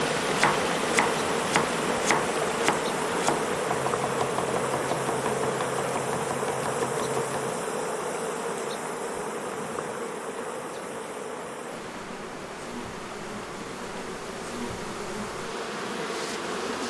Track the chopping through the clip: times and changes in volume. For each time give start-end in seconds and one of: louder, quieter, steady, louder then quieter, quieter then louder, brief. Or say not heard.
0.3-7.5 quieter.